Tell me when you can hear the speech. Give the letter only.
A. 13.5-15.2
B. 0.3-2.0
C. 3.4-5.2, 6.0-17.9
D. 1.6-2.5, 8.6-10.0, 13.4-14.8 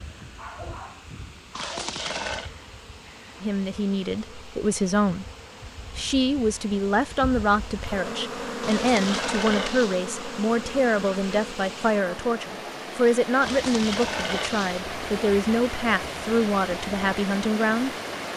C.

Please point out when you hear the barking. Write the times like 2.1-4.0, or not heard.
0.3-2.0.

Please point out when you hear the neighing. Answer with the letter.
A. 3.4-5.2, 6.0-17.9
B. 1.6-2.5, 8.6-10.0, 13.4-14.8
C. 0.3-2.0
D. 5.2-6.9
B.